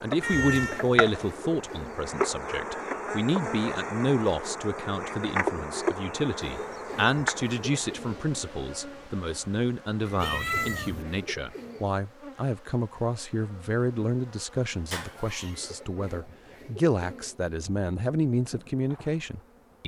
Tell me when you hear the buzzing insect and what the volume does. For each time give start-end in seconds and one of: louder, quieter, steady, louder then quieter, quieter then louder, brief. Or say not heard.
0.0-19.8 quieter.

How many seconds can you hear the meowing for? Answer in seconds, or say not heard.
2 s.